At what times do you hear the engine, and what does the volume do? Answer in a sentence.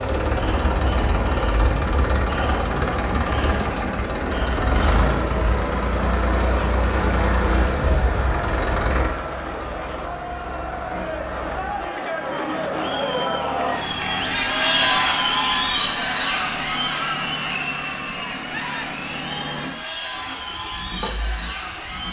You can hear the engine from 0.0 to 22.0 s, getting quieter.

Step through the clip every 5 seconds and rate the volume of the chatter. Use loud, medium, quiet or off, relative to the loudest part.
medium, medium, loud, loud, medium.